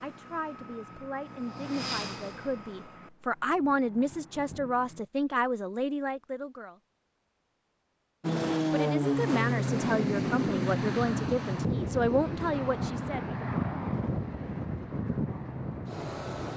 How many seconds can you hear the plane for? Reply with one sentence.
You can hear the plane for 13 seconds altogether.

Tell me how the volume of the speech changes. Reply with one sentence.
The volume of the speech goes up.